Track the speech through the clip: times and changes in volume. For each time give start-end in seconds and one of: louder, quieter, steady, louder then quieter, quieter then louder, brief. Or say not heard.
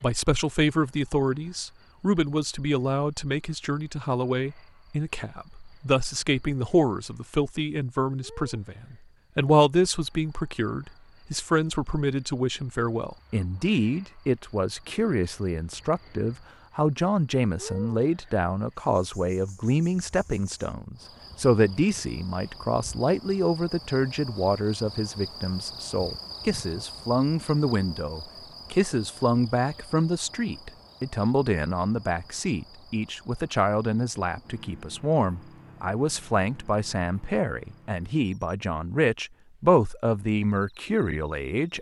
0.0-41.7 steady.